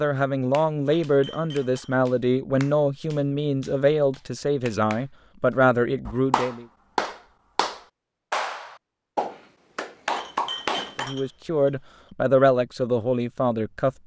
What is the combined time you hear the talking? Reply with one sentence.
The talking can be heard for 10 seconds in total.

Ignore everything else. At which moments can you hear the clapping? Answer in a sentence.
You can hear the clapping from 0.5 to 11.1 s.